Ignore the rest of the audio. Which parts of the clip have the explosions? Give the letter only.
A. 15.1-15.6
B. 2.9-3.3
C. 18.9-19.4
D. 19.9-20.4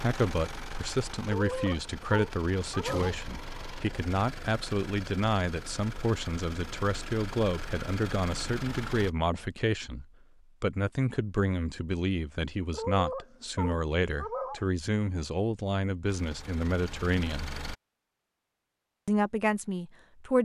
B.